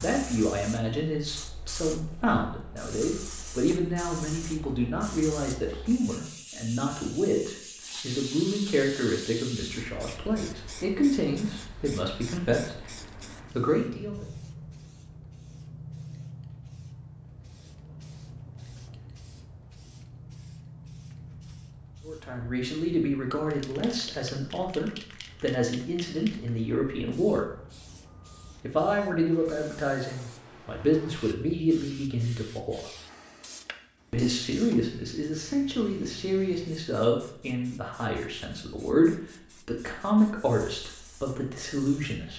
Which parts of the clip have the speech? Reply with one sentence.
You can hear the speech from 0.0 to 14.2 s, from 22.1 to 27.5 s, from 28.6 to 32.9 s and from 34.1 to 42.3 s.